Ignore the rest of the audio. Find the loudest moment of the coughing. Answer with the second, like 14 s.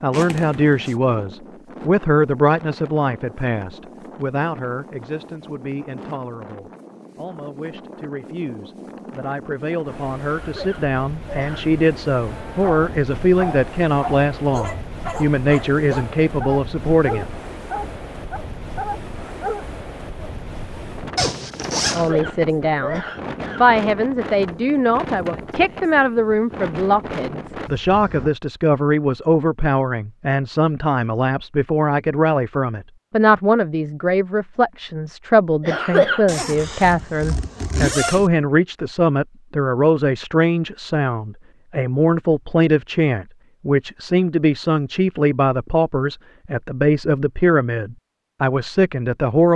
36 s.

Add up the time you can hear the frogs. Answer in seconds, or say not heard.
not heard.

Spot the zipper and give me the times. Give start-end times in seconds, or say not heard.
0.1-0.9, 21.1-22.1, 36.2-38.3.